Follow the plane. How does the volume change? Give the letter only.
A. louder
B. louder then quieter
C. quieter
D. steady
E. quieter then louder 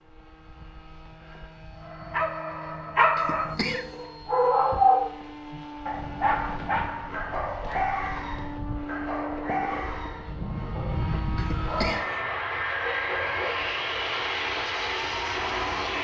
A.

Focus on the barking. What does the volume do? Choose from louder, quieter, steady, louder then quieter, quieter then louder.
quieter.